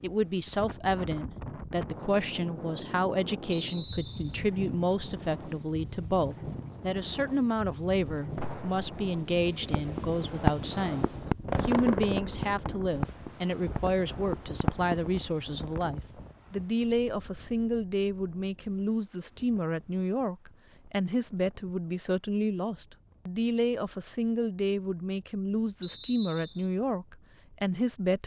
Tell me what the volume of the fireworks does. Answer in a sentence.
The loudness of the fireworks goes up, then down.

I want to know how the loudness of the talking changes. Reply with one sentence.
The volume of the talking stays about the same.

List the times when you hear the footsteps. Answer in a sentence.
You can't hear the footsteps here.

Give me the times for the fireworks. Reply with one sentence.
The fireworks can be heard from 8.3 to 15.0 s.